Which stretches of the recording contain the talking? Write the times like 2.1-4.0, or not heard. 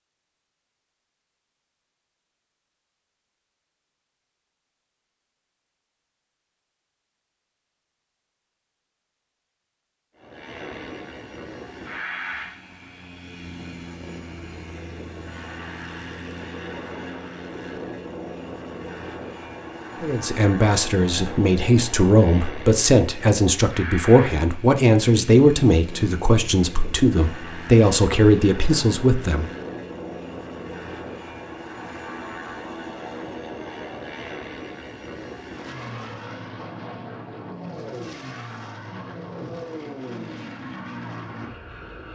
20.0-29.5.